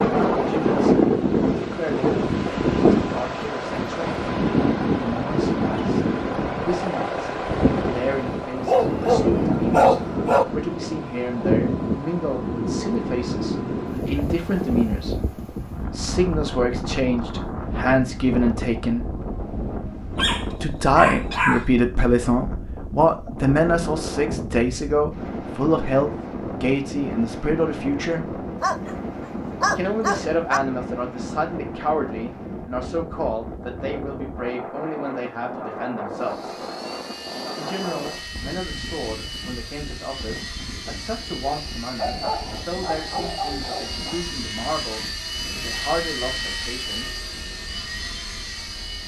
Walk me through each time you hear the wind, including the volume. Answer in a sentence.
You can hear the wind from 0.0 to 49.0 s, getting quieter.